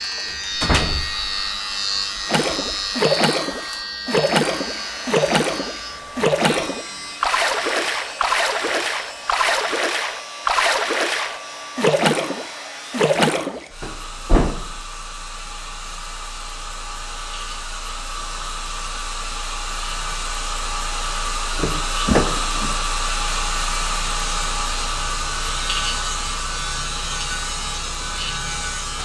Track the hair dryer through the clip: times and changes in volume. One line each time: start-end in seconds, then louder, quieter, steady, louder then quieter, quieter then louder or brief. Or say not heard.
0.0-29.0 louder.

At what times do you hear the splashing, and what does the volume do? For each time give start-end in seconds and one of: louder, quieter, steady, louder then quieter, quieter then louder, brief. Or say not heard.
2.2-13.7 steady.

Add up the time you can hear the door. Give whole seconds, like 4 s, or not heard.
3 s.